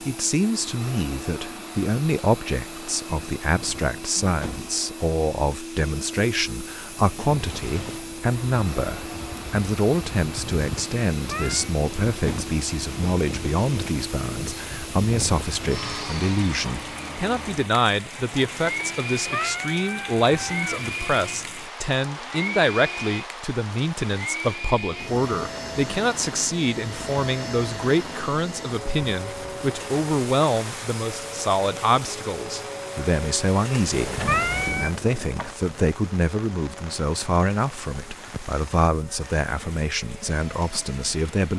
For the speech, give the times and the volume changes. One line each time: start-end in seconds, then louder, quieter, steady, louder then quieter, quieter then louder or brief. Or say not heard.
0.1-41.5 steady.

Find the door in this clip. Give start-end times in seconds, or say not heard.
33.9-35.5.